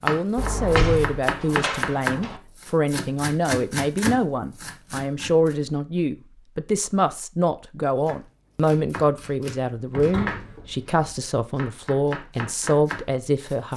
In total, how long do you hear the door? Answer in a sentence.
The door can be heard for 3 seconds in total.